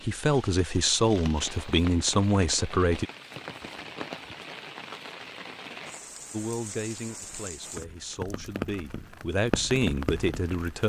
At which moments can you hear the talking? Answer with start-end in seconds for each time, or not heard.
0.0-3.0, 6.3-10.8.